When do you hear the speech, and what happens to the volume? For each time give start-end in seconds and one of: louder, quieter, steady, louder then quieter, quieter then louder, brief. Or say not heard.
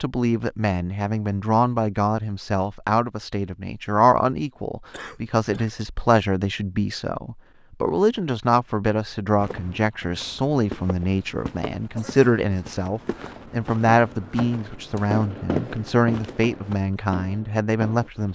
0.0-18.3 steady.